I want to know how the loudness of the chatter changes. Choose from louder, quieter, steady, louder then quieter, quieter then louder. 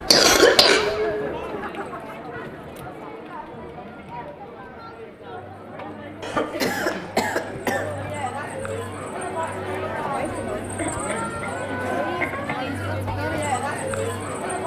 quieter then louder.